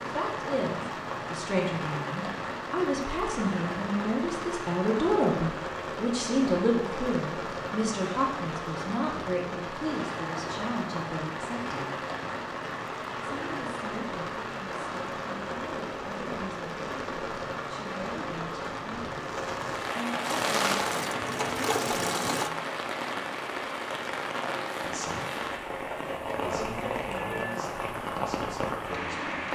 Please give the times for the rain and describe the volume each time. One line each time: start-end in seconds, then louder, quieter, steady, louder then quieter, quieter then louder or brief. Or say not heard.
0.0-29.5 steady.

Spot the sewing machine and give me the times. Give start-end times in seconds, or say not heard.
20.2-22.5.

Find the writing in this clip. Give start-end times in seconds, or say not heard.
not heard.